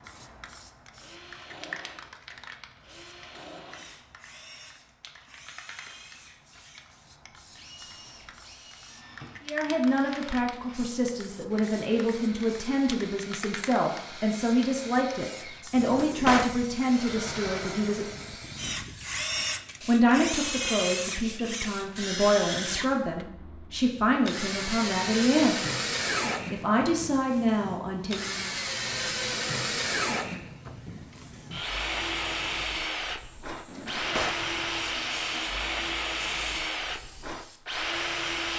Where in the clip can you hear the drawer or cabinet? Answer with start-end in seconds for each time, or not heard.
15.8-16.6, 33.6-34.5.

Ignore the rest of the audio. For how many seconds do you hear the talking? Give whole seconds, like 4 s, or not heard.
16 s.